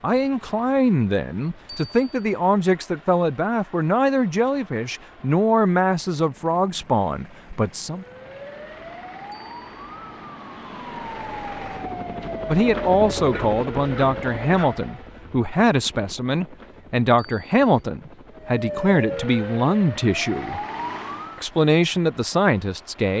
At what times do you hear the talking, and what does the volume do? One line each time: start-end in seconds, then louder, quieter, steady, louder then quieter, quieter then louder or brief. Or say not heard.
0.0-8.1 steady
12.4-20.6 steady
21.4-23.1 brief.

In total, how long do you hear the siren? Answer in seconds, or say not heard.
10 s.